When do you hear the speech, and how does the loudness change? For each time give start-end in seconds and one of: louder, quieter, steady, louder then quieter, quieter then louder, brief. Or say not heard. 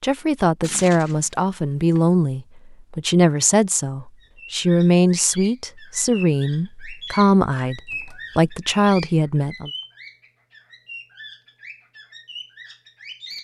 0.0-9.7 steady.